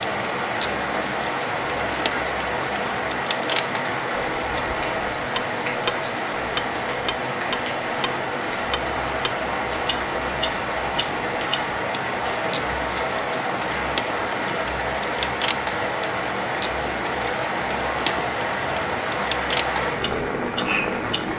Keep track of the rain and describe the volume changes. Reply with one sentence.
The volume of the rain stays about the same.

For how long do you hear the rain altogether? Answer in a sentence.
You can hear the rain for 21 seconds altogether.